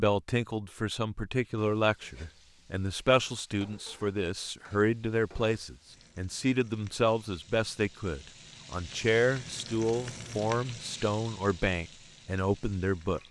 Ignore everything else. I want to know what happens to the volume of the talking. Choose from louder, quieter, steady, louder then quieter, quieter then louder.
steady.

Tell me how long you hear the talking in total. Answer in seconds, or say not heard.
13 s.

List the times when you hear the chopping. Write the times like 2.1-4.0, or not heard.
not heard.